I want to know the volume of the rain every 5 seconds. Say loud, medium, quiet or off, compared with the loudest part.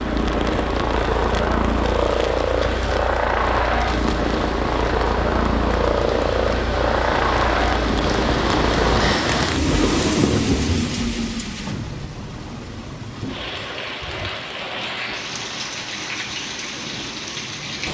medium, loud, loud, medium.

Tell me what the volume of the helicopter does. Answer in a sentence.
The volume of the helicopter stays about the same.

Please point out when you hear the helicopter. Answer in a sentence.
You can hear the helicopter from 0.0 to 9.2 s.